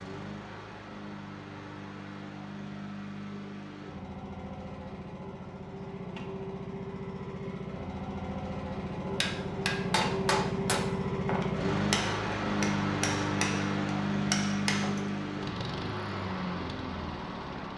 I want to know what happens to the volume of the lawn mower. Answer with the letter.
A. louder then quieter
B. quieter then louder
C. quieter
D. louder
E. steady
D.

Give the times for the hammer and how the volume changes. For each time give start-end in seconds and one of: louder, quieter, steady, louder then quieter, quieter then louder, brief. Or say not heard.
9.0-15.1 steady.